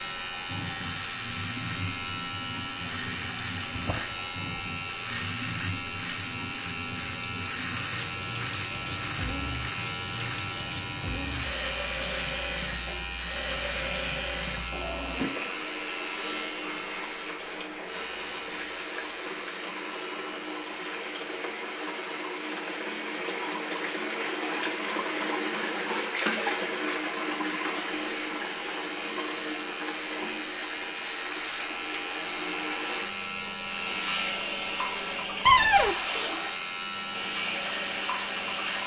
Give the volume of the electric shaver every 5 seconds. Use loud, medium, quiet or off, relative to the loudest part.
loud, loud, loud, medium, medium, medium, loud, loud.